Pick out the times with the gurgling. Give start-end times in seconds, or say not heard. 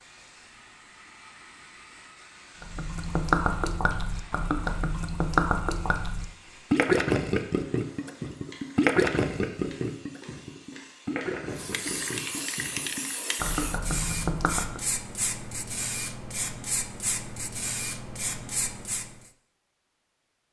2.6-14.8.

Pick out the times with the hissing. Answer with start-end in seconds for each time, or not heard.
0.0-19.3.